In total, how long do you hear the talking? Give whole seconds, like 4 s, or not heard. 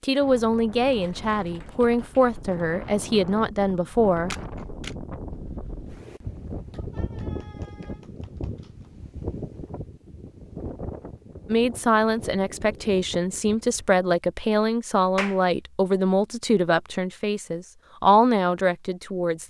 12 s.